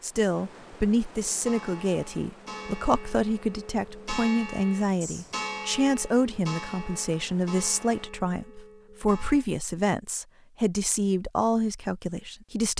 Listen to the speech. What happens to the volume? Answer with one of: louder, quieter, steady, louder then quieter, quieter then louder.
steady.